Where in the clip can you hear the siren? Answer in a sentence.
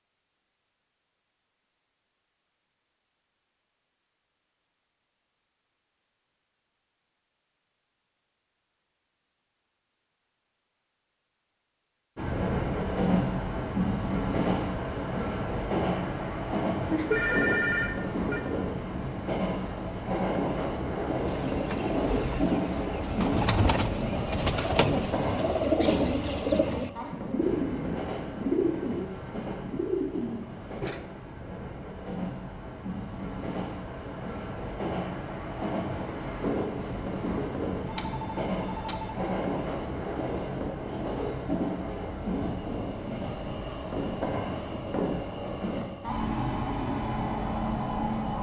The siren can't be heard in this clip.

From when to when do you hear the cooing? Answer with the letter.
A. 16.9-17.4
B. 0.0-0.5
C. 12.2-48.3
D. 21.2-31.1
D.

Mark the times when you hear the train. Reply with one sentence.
You can hear the train from 12.2 to 48.3 s.